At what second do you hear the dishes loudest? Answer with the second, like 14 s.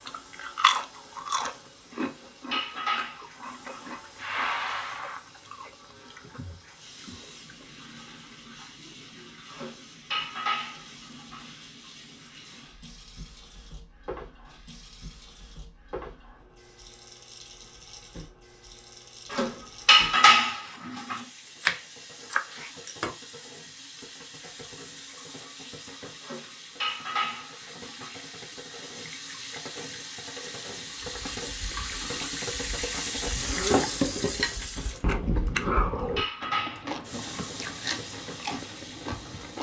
20 s.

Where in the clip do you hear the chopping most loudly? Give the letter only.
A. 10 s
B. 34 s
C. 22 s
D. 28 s
C.